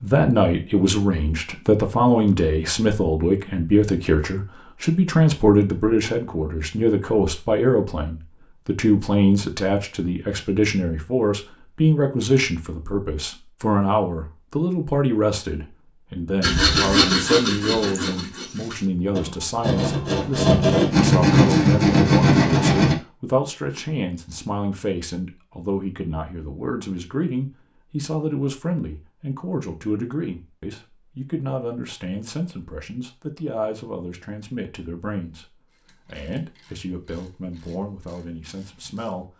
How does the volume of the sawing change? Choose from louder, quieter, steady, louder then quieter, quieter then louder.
quieter then louder.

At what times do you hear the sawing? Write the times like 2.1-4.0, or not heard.
16.4-22.9.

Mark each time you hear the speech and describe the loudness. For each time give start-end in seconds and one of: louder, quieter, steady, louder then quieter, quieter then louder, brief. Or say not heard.
0.0-39.3 quieter.